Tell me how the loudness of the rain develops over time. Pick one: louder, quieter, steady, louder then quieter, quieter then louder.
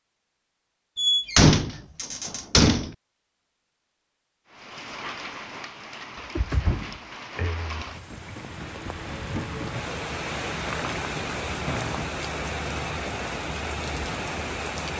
louder.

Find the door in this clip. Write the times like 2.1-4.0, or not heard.
0.9-2.9, 6.2-7.8, 10.5-12.1.